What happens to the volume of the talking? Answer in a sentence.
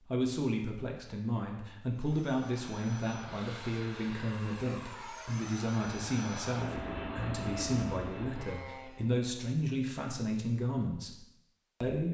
The volume of the talking stays about the same.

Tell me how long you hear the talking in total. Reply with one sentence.
The talking can be heard for 12 seconds in total.